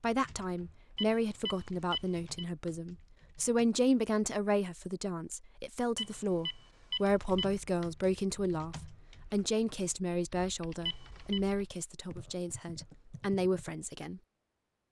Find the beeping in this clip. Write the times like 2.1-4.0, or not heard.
0.9-2.5, 6.0-7.5, 10.8-11.4.